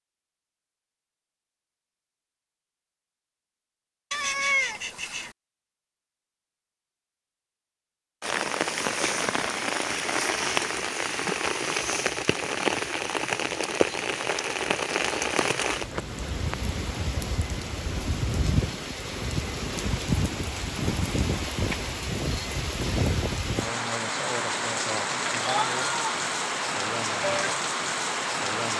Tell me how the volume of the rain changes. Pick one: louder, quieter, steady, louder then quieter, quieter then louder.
steady.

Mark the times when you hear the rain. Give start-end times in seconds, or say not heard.
8.2-28.7.